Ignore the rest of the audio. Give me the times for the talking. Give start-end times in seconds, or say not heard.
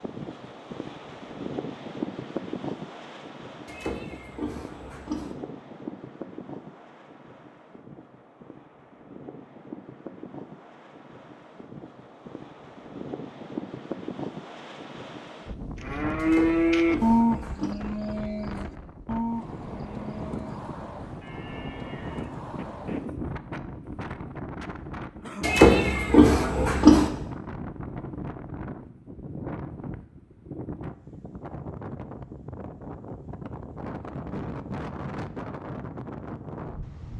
not heard.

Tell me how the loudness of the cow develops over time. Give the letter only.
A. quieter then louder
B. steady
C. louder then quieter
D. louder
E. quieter
E.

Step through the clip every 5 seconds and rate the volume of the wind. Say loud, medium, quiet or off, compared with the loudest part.
loud, medium, loud, loud, loud, loud, loud, loud.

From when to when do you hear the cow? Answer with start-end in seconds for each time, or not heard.
15.8-23.2.